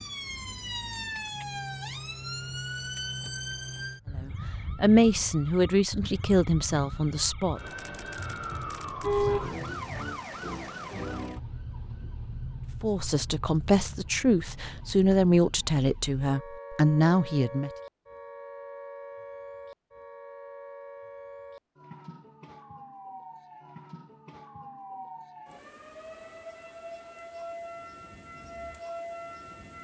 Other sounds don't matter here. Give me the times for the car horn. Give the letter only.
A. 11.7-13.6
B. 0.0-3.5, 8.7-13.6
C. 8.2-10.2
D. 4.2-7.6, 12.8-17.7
C.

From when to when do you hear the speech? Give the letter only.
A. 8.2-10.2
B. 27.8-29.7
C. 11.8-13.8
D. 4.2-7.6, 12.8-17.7
D.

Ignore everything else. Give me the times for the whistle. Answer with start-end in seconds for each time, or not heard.
not heard.